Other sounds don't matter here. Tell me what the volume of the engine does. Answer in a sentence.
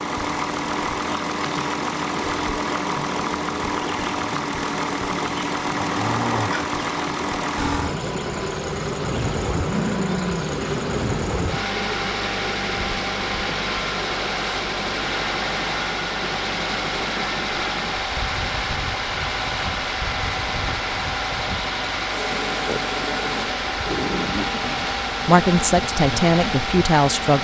The volume of the engine stays about the same.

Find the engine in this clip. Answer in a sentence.
The engine can be heard from 0.0 to 27.3 s.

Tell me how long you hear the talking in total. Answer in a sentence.
You can hear the talking for 2 seconds altogether.